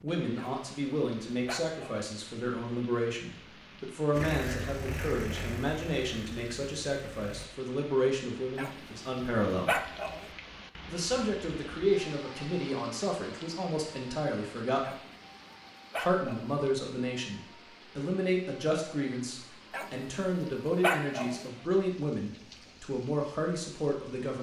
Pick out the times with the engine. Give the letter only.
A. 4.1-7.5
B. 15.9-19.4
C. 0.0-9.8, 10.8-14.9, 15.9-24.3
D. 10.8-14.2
A.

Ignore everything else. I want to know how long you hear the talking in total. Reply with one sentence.
You can hear the talking for 22 seconds altogether.